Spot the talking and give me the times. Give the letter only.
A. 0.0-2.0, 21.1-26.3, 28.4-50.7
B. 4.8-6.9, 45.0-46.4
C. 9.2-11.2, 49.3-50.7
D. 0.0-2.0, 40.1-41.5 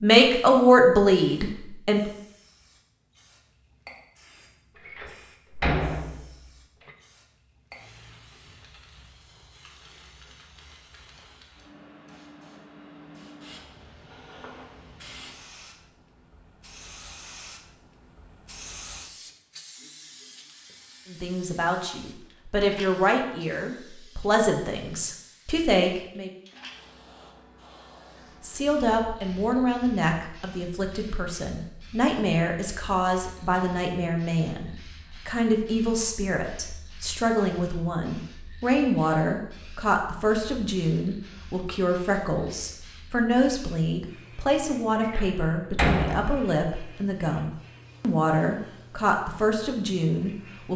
A.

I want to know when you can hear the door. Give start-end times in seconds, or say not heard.
4.8-6.9, 45.0-46.4.